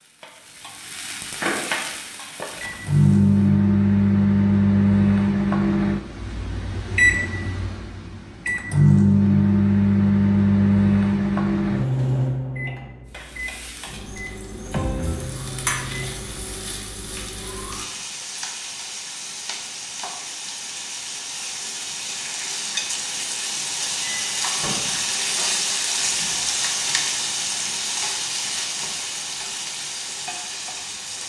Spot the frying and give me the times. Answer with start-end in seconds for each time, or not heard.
0.0-3.5, 13.1-31.2.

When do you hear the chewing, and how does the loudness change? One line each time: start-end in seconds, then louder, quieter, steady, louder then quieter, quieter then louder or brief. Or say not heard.
not heard.